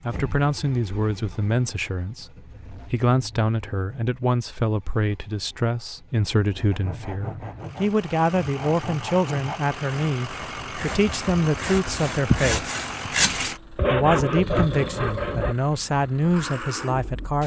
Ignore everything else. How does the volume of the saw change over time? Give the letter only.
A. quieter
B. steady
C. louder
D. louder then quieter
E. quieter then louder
C.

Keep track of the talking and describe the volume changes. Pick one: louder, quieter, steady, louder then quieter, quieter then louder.
steady.